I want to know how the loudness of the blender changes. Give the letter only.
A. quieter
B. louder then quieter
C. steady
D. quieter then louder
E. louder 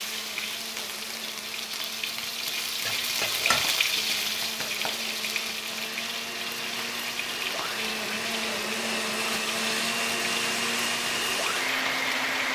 E.